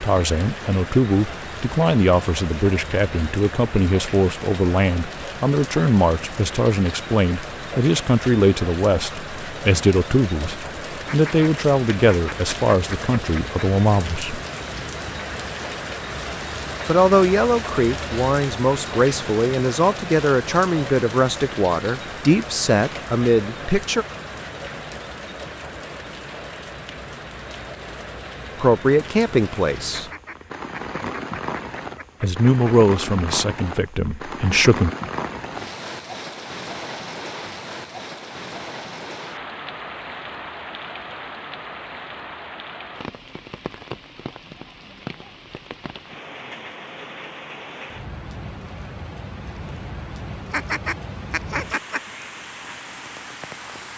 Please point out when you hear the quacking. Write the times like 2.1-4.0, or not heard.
11.1-13.7, 29.9-32.8, 50.5-52.0.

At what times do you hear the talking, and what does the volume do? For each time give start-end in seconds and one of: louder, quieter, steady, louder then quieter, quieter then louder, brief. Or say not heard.
0.0-14.4 steady
16.9-24.1 steady
28.6-30.1 brief
32.2-34.9 brief.